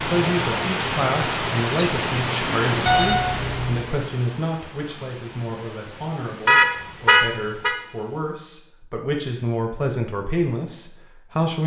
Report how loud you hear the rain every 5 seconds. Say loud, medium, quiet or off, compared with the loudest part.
loud, quiet, off.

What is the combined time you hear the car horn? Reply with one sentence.
The car horn can be heard for 2 seconds in total.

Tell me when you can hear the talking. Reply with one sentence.
You can hear the talking from 0.0 to 11.6 s.